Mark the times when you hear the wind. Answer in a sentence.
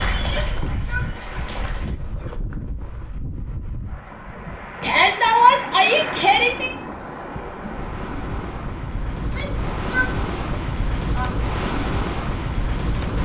The wind can be heard from 0.0 to 13.2 s.